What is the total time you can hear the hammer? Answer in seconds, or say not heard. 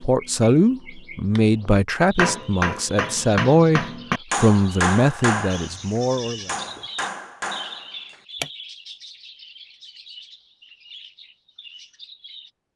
6 s.